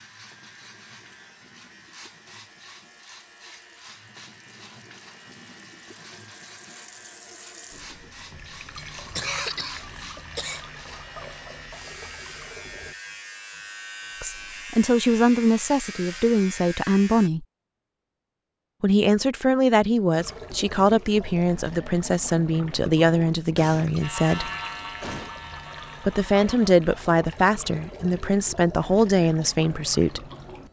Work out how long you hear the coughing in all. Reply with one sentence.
The coughing can be heard for 3 seconds in total.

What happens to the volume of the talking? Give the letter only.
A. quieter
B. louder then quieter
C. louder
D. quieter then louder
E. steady
E.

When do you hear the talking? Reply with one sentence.
The talking can be heard from 14.2 to 17.4 s, from 18.8 to 24.5 s and from 26.1 to 30.2 s.